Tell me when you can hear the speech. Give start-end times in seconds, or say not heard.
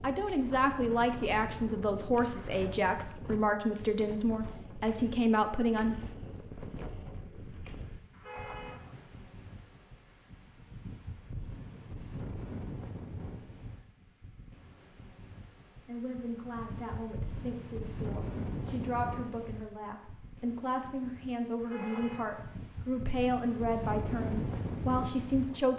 0.0-6.0, 15.8-25.7.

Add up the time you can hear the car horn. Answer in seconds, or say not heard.
2 s.